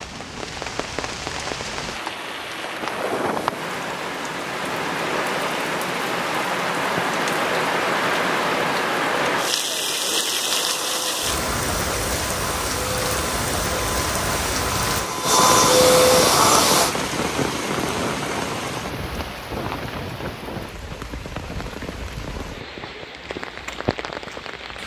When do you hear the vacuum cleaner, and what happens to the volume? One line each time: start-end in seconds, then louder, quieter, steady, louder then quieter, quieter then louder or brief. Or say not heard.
10.4-16.9 louder.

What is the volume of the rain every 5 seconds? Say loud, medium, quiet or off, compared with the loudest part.
medium, loud, loud, loud, medium.